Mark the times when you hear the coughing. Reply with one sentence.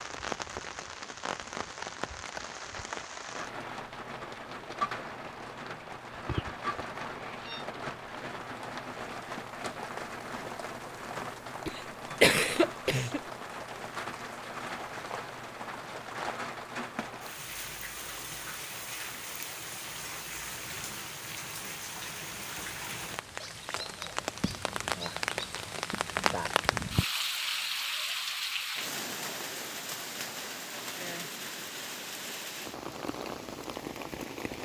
The coughing can be heard from 11.7 to 13.2 s.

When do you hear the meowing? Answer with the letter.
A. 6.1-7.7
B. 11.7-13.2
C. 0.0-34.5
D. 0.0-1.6
A.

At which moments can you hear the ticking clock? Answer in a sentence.
The ticking clock can't be heard in this clip.